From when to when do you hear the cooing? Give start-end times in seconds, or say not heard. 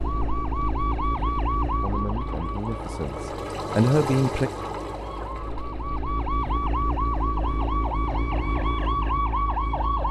not heard.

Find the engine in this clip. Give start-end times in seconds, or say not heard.
0.0-10.0.